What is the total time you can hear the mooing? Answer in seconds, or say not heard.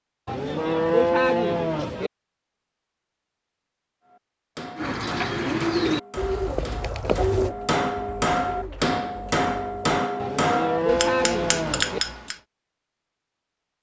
4 s.